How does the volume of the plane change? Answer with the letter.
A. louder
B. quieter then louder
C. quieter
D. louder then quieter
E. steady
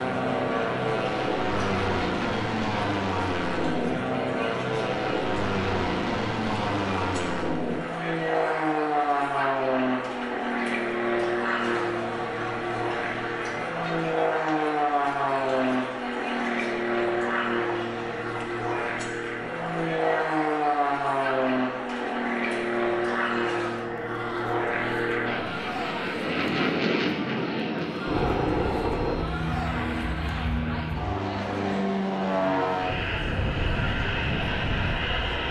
E.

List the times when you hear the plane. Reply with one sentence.
You can hear the plane from 0.0 to 35.4 s.